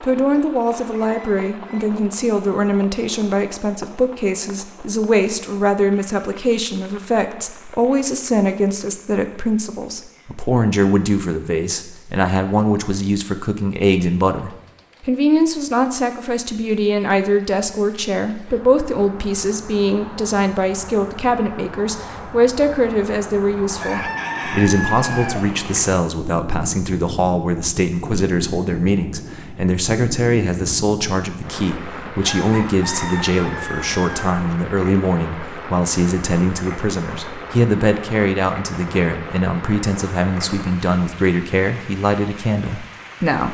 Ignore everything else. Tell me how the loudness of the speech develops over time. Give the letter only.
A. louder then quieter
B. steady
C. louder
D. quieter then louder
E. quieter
B.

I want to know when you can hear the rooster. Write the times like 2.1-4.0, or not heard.
0.8-1.9, 23.8-25.4, 32.2-34.4.